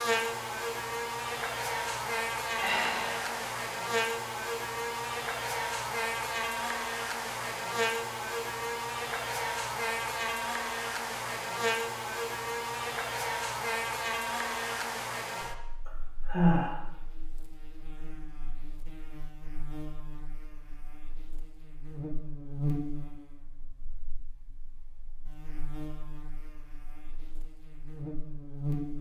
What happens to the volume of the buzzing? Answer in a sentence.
The loudness of the buzzing goes down.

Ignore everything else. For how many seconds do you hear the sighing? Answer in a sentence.
The sighing can be heard for 2 seconds in total.